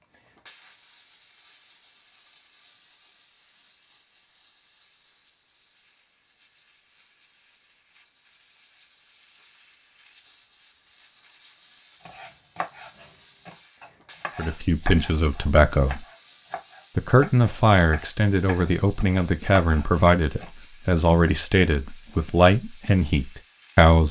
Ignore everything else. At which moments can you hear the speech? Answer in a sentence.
You can hear the speech from 14.3 to 16.1 s and from 16.9 to 24.0 s.